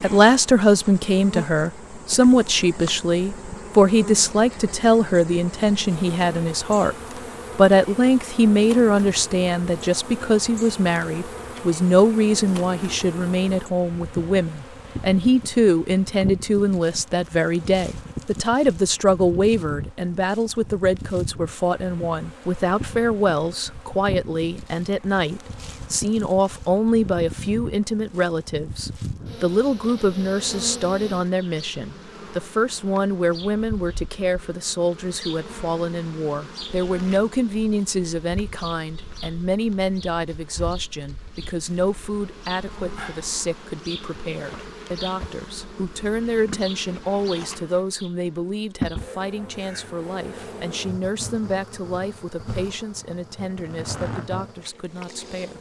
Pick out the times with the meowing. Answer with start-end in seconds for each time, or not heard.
not heard.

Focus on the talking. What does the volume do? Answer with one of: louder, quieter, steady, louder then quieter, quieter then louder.
quieter.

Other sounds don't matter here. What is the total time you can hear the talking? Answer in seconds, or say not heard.
55 s.